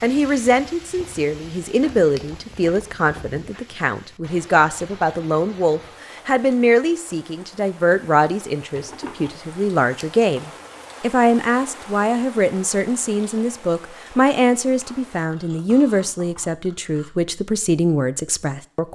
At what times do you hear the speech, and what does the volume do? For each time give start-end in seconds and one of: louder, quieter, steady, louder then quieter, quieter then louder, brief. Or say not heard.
0.0-18.8 steady.